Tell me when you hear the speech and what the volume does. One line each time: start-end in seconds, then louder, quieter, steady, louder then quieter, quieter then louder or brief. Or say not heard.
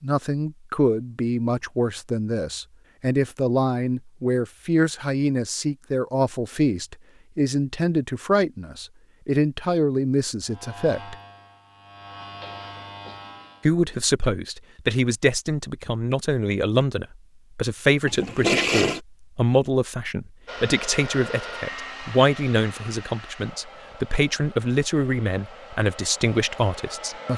0.0-11.2 steady
13.7-27.3 steady.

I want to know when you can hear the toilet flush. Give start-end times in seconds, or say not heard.
18.1-19.0.